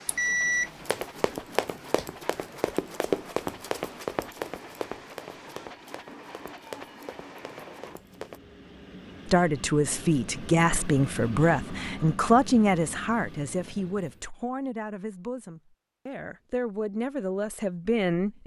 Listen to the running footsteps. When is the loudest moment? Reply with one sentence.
The loudest moment of the running footsteps is at 3 seconds.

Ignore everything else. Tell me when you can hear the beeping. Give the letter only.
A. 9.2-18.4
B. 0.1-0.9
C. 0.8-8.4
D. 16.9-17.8
B.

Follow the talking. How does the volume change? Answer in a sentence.
The loudness of the talking goes down, then up.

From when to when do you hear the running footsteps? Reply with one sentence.
The running footsteps can be heard from 0.8 to 8.4 s.